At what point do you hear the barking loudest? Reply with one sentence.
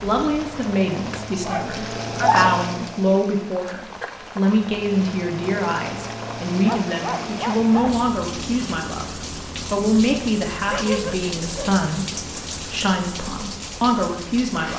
The loudest moment of the barking is at 2 seconds.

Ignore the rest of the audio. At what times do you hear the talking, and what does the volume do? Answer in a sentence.
The talking can be heard from 0.0 to 14.7 s, at a steady volume.